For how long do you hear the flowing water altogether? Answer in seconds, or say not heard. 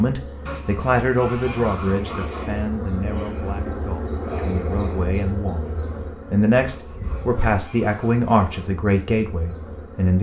not heard.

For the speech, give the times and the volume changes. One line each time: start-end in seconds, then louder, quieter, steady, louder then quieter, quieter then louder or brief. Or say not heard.
0.0-10.1 quieter then louder.